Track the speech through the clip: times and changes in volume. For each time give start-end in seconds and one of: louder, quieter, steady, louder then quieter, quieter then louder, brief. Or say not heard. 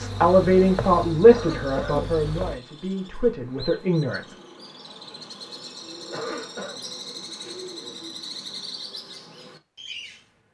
0.0-4.3 quieter then louder.